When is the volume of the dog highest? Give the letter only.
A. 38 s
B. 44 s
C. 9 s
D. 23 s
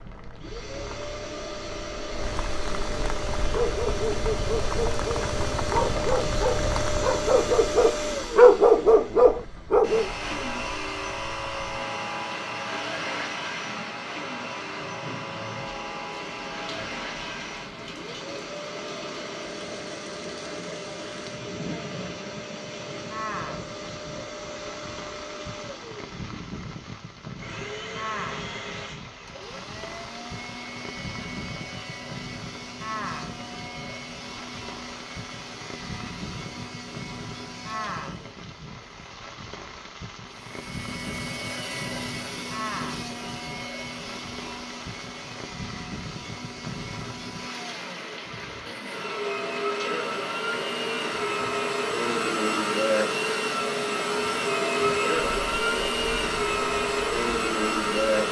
C.